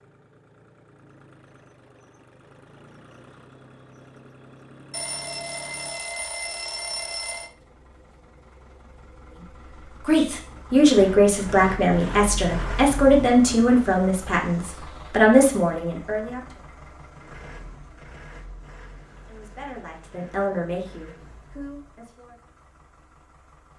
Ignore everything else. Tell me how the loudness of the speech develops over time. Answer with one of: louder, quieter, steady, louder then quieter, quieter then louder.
quieter.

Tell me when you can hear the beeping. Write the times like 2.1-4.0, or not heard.
4.9-7.5.